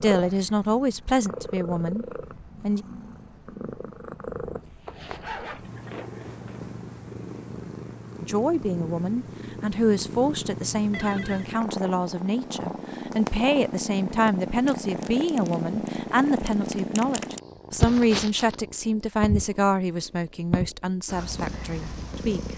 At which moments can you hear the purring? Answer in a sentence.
You can hear the purring from 0.0 to 22.5 s.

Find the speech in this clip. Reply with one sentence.
The speech can be heard from 0.0 to 2.9 s and from 8.2 to 22.5 s.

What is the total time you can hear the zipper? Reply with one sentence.
The zipper can be heard for 2 seconds in total.